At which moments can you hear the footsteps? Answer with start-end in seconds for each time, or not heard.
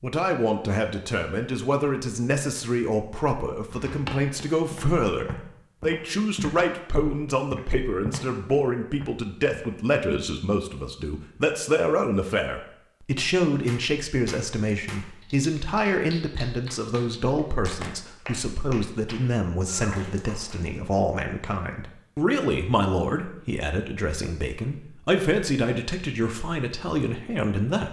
3.6-10.2.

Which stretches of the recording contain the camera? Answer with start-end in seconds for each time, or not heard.
17.5-17.9.